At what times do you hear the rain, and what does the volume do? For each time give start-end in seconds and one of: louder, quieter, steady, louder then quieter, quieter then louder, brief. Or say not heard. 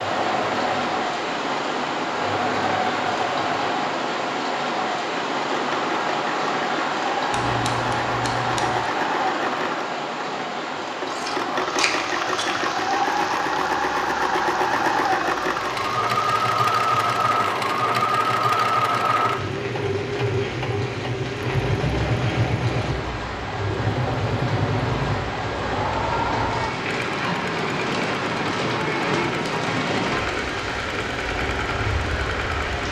0.0-32.8 quieter then louder.